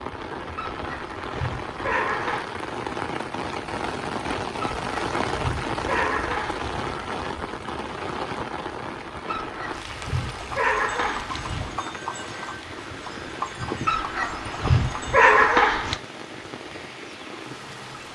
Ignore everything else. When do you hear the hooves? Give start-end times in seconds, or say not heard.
10.2-15.5.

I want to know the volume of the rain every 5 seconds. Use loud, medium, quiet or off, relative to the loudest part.
loud, loud, medium, medium.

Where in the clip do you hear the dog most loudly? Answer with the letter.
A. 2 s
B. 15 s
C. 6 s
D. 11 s
B.